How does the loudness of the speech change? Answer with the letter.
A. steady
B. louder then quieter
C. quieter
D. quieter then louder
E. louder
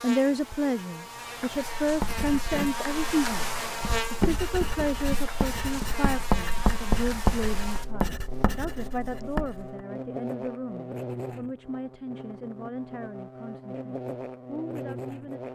C.